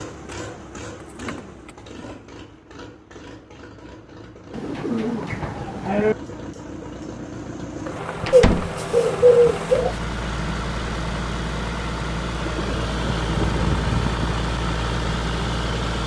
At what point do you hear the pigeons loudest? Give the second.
9 s.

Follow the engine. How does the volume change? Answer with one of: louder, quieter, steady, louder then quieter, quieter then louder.
louder.